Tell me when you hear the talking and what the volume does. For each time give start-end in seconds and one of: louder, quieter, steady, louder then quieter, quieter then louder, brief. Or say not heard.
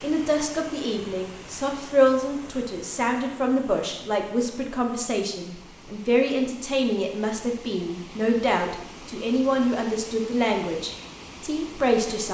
0.0-12.2 steady.